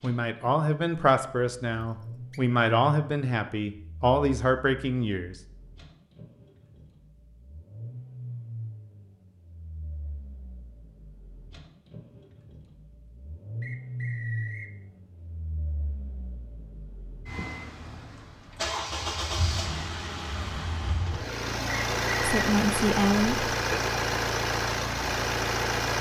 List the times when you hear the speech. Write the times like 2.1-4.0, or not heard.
0.0-5.3, 22.2-23.8.